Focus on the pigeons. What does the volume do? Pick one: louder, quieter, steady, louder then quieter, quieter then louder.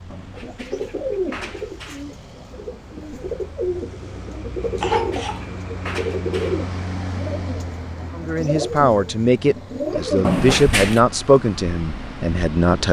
steady.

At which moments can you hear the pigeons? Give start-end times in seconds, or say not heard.
0.3-10.3.